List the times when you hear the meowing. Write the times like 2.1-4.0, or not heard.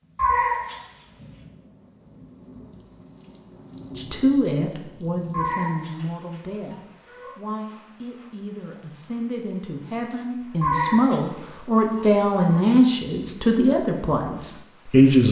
0.1-1.4, 5.3-7.3, 10.6-12.6.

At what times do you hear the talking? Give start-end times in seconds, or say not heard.
4.0-15.2.